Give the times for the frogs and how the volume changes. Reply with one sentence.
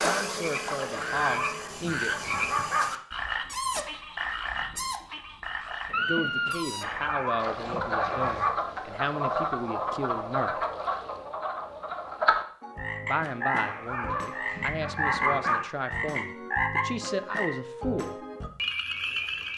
You can hear the frogs from 0.0 to 19.5 s, at a steady volume.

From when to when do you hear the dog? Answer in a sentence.
You can hear the dog from 0.9 to 2.9 s, from 6.8 to 8.5 s and from 13.6 to 15.7 s.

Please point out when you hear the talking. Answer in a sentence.
You can hear the talking from 0.0 to 2.3 s, from 6.0 to 10.7 s and from 13.0 to 18.2 s.